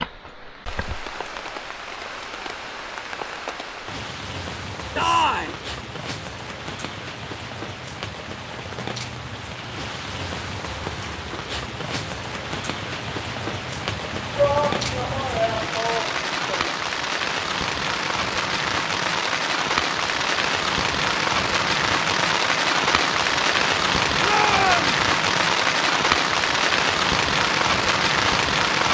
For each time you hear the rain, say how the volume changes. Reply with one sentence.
The rain can be heard from 0.0 to 28.9 s, getting louder.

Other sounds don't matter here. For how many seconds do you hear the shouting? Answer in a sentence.
The shouting can be heard for 4 seconds in total.